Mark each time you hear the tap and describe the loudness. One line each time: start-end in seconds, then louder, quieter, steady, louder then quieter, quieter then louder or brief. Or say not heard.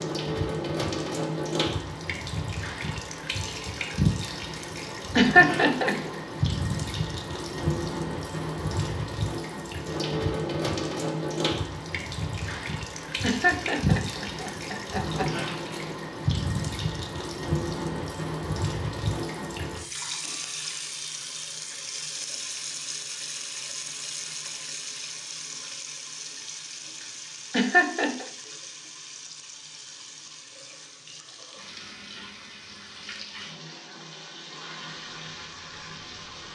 0.0-36.4 quieter.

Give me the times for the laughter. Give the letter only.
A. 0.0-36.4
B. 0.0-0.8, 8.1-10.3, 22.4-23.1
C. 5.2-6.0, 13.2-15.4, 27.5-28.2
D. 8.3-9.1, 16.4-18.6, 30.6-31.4
C.